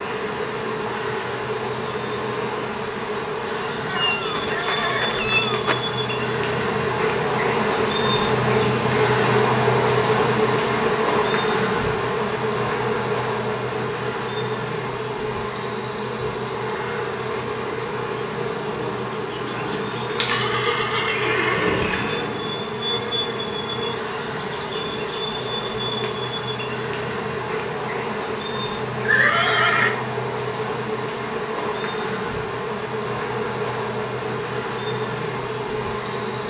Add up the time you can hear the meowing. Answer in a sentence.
You can hear the meowing for 2 seconds altogether.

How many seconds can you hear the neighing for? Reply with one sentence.
The neighing can be heard for 4 seconds in total.